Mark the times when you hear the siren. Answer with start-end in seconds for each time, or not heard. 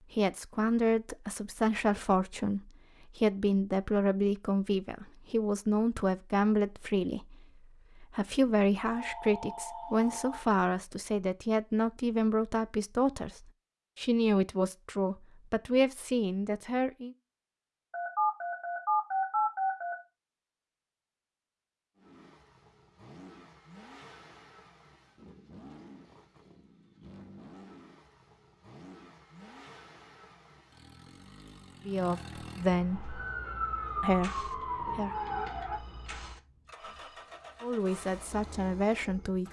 32.9-35.8.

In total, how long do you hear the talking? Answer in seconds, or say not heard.
21 s.